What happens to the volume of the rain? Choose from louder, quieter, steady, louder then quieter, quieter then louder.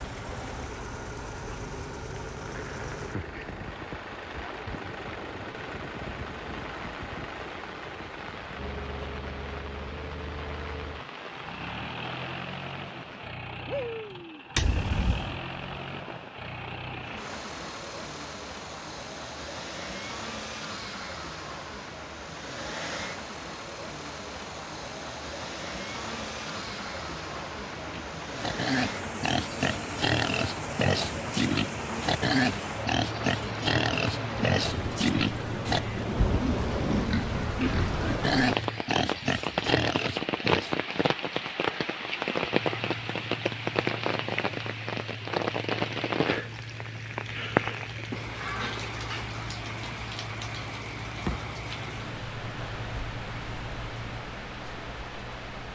louder.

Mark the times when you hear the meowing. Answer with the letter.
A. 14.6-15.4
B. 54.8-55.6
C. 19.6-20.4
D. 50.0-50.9
A.